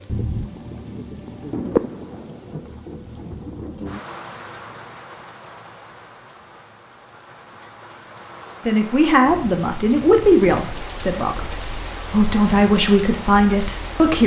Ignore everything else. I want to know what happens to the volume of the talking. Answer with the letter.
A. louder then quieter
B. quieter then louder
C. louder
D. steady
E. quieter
B.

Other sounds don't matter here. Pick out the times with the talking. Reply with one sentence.
You can hear the talking from 8.7 to 14.2 s.